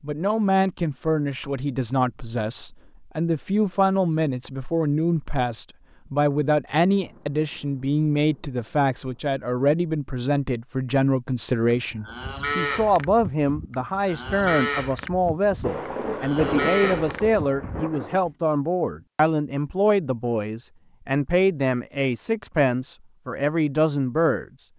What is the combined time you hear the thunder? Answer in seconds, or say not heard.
5 s.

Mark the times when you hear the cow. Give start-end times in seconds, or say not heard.
11.8-18.3.